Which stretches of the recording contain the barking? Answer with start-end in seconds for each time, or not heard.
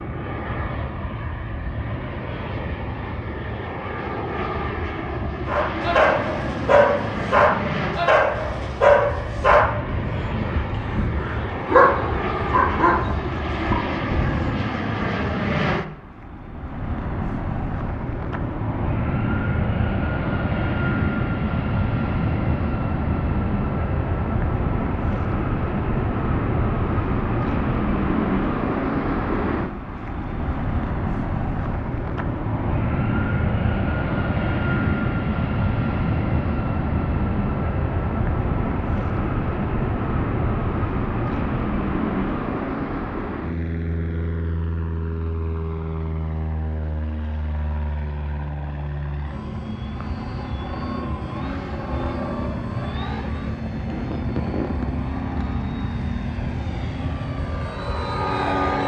5.5-14.7.